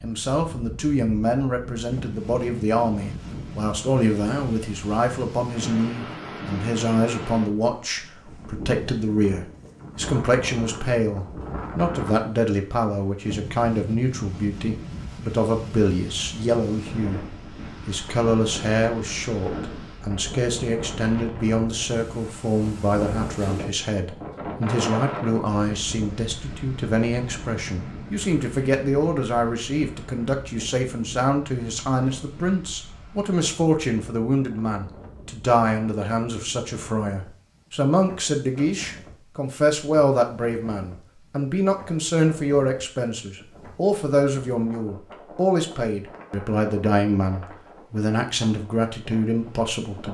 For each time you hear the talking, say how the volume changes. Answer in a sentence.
The talking can be heard from 0.0 to 50.0 s, at a steady volume.